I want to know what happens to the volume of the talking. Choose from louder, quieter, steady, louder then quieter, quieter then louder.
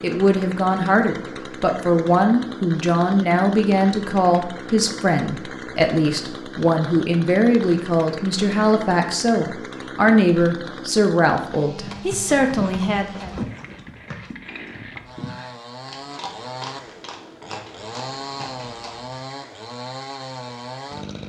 steady.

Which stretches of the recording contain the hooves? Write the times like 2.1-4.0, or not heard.
11.8-19.1.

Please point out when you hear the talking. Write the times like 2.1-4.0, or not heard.
0.0-13.3.